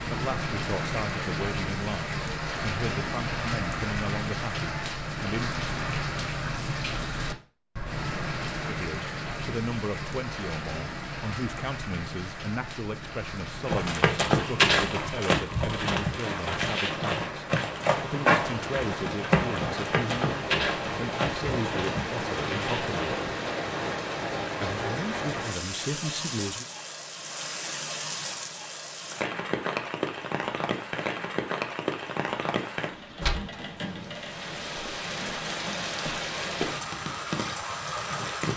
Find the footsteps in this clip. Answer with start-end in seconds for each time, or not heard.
13.7-23.3.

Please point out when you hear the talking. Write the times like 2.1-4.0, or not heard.
0.1-5.5, 8.7-22.9, 24.6-26.6.